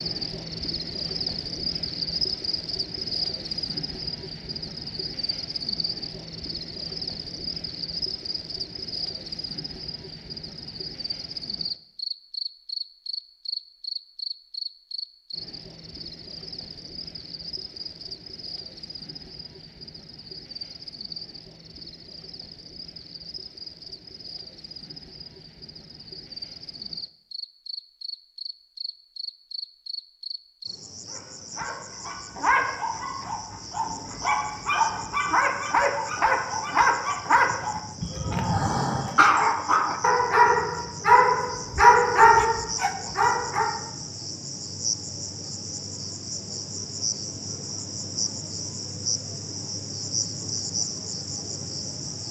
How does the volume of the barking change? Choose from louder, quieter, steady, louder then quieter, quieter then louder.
louder.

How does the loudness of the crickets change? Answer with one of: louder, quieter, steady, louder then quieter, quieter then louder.
quieter then louder.